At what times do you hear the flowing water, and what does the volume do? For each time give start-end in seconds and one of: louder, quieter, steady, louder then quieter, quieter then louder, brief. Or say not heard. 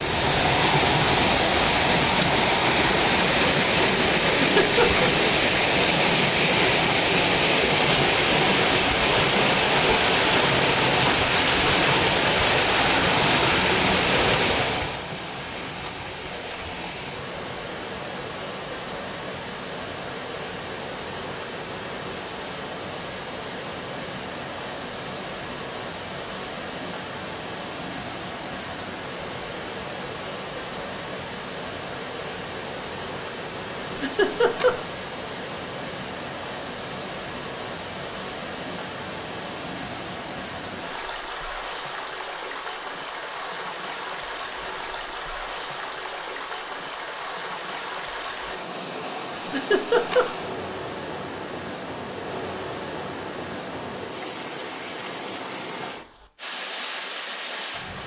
0.0-58.0 quieter.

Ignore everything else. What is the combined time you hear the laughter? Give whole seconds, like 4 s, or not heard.
3 s.